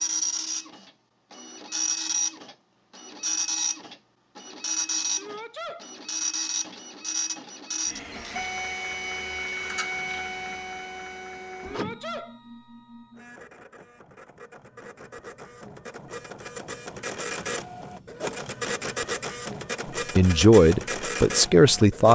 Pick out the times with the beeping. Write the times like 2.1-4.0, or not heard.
not heard.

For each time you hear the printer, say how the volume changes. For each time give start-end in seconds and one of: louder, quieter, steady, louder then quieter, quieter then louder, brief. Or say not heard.
0.0-22.1 quieter then louder.